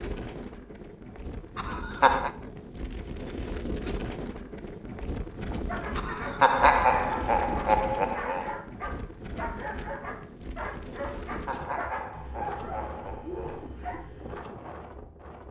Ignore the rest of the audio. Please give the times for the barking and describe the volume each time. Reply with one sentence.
You can hear the barking from 5.5 to 14.4 s, at a steady volume.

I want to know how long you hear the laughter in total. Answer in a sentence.
You can hear the laughter for 6 seconds altogether.